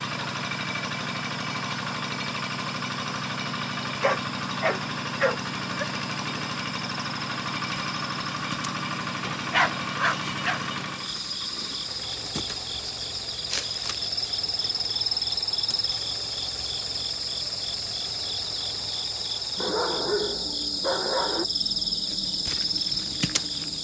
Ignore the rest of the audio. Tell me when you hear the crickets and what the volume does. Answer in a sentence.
You can hear the crickets from 0.0 to 23.7 s, getting louder.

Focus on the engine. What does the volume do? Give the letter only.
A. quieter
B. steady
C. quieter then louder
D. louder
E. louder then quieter
A.